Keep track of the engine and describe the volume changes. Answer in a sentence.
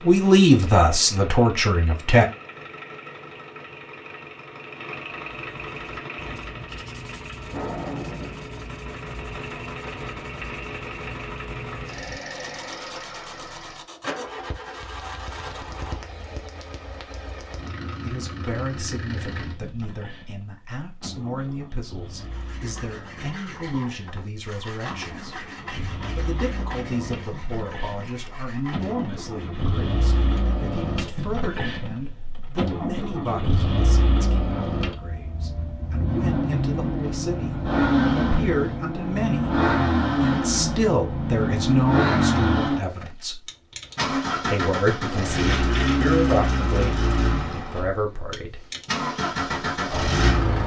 The loudness of the engine goes up.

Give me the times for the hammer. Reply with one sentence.
You can't hear the hammer here.